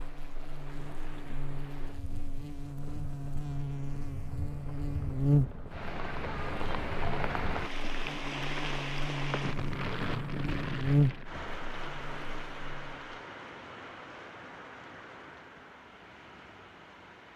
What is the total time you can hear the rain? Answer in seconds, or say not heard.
17 s.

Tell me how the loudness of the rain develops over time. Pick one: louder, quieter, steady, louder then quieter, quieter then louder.
louder then quieter.